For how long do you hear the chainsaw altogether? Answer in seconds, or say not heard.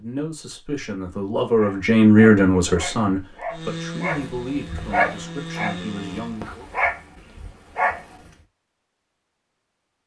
3 s.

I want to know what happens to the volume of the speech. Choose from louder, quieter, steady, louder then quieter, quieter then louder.
louder then quieter.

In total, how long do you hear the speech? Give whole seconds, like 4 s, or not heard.
7 s.